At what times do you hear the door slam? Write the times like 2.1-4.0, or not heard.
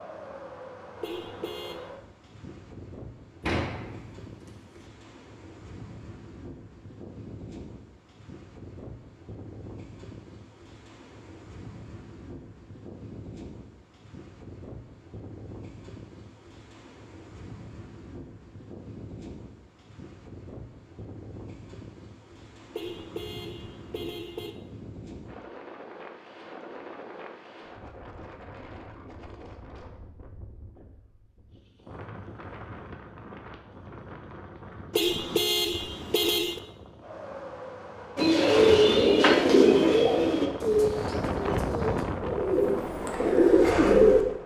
3.5-4.8.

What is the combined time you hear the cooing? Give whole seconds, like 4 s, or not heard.
6 s.